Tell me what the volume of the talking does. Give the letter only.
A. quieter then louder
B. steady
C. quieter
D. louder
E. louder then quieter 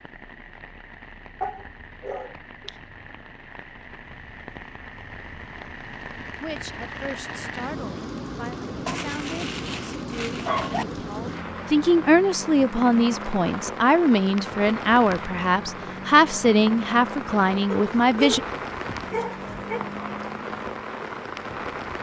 D.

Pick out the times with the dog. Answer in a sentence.
The dog can be heard from 1.4 to 2.7 s, from 8.8 to 10.8 s and from 17.7 to 19.9 s.